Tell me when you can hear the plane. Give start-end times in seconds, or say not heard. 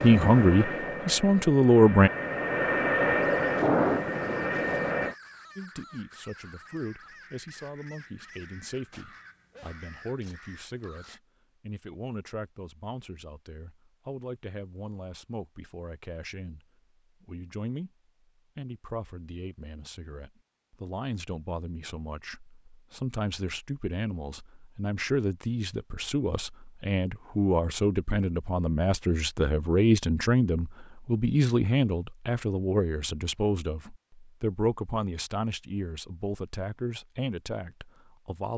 0.0-5.2.